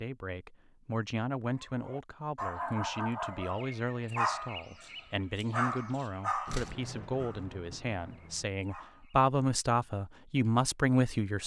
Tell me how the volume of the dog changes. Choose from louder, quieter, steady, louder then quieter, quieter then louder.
quieter.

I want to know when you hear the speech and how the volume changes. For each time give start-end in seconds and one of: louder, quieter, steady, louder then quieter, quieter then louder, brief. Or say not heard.
0.0-11.4 louder.